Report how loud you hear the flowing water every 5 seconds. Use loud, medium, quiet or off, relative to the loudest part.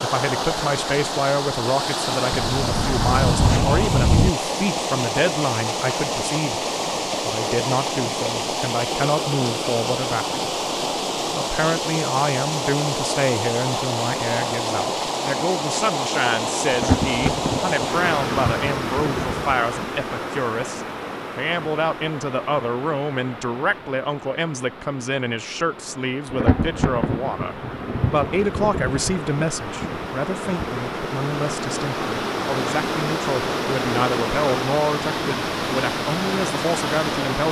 loud, loud, loud, loud, medium, medium, loud, loud.